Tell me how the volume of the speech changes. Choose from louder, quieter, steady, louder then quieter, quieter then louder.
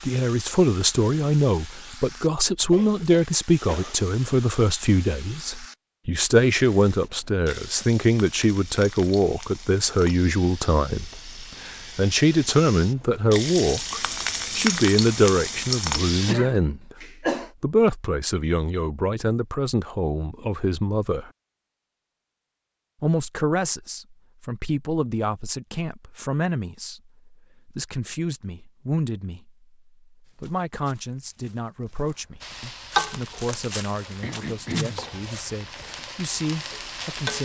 quieter.